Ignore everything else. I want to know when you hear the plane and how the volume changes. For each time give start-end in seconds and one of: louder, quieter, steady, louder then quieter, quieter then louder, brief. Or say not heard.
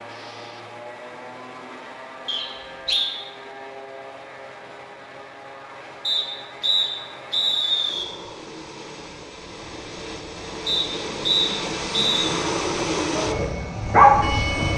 0.0-14.7 louder.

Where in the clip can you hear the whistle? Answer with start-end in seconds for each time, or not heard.
2.2-3.1, 6.0-8.1, 10.7-12.3.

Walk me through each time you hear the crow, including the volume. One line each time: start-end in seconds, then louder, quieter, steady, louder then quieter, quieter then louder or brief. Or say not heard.
not heard.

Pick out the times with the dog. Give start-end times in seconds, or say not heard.
13.2-14.7.